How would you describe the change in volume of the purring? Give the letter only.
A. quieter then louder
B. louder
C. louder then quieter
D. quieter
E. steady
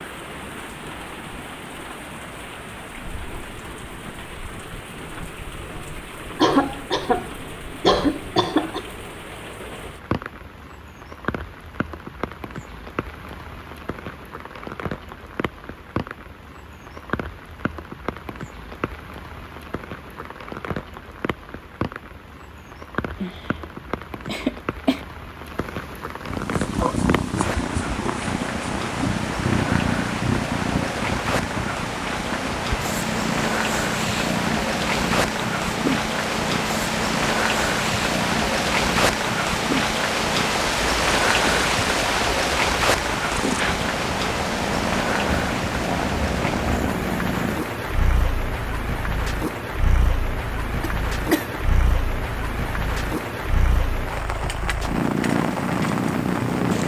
E.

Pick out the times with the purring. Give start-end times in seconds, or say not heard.
26.2-56.8.